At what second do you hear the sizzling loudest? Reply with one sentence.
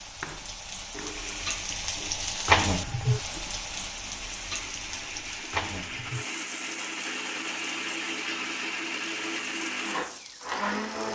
The volume of the sizzling peaks at 3 seconds.